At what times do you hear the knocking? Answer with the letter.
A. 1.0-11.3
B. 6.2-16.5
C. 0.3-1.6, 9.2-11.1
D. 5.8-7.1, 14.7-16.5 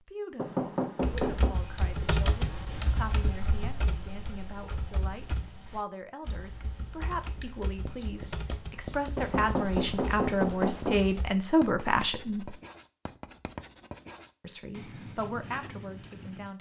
C.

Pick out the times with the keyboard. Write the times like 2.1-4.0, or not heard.
1.0-11.3.